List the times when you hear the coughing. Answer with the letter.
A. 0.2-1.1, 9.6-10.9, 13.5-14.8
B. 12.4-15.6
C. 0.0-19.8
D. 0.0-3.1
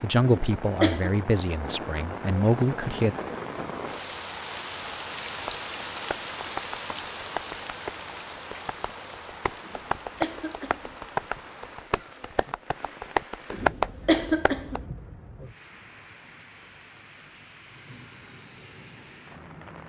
A.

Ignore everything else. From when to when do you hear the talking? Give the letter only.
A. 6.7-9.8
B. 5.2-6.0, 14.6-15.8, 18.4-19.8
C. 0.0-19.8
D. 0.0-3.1
D.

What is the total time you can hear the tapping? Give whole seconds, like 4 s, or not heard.
9 s.